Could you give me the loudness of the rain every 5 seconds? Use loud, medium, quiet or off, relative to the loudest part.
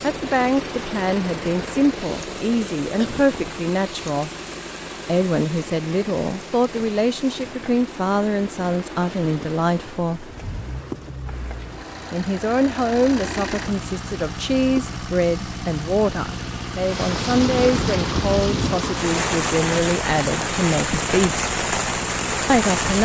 quiet, quiet, quiet, loud, loud.